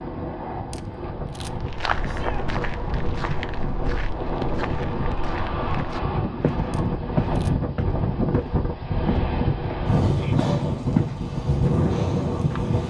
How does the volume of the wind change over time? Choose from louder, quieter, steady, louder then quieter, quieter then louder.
louder.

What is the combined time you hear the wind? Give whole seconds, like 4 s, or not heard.
13 s.